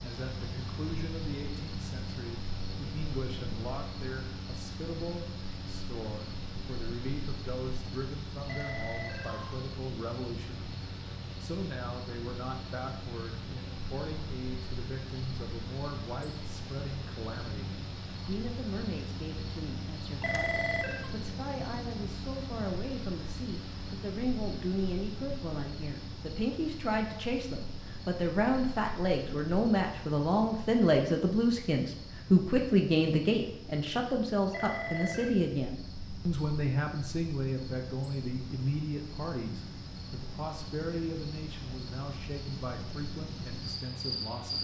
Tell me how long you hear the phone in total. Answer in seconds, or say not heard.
3 s.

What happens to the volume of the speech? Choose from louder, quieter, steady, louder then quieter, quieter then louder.
louder then quieter.